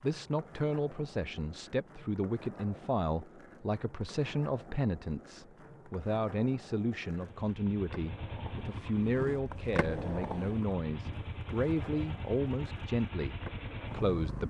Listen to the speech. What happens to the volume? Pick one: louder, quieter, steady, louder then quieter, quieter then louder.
steady.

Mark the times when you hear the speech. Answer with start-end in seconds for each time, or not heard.
0.0-14.4.